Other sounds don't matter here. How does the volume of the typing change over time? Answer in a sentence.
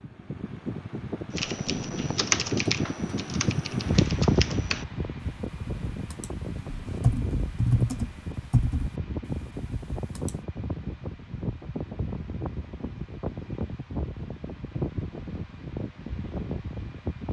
The loudness of the typing goes down, then up.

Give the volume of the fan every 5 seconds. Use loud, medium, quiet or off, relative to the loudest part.
loud, medium, medium, medium.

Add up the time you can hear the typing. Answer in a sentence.
You can hear the typing for 9 seconds altogether.